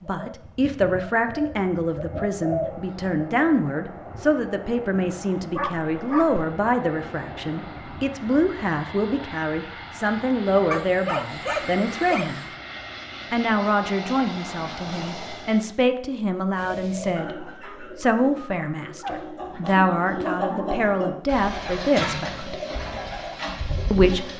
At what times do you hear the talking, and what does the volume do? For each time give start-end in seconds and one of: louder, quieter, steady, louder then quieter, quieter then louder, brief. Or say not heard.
0.0-12.4 steady
13.3-22.6 steady
23.9-24.3 brief.